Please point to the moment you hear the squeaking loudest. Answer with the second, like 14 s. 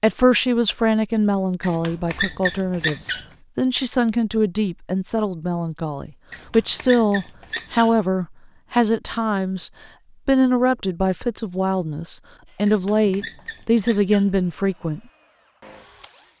3 s.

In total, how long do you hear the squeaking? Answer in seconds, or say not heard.
5 s.